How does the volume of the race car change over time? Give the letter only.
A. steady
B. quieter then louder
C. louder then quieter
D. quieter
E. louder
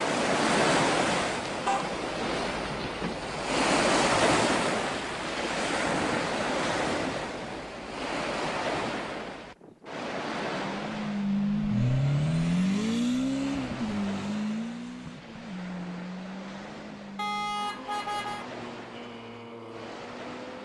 D.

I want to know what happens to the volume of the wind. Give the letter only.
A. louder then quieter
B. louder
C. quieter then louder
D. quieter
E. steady
D.